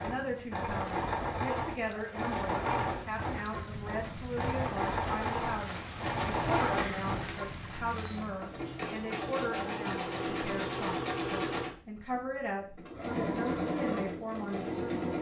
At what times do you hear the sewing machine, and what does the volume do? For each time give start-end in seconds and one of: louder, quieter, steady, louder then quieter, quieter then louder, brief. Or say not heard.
0.0-15.1 steady.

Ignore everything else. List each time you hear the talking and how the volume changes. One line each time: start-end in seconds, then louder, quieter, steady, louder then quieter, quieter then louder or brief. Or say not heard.
0.0-15.1 steady.